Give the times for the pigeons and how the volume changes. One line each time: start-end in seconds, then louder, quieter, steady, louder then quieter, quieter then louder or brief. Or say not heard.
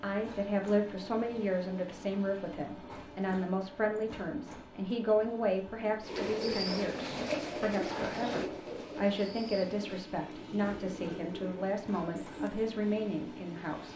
6.0-12.7 quieter.